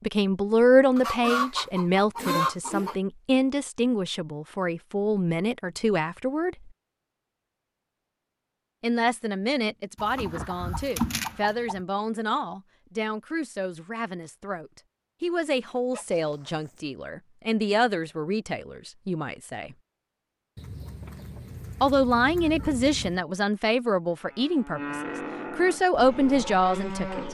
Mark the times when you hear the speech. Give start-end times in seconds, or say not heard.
0.0-6.7, 8.8-19.8, 21.8-27.2.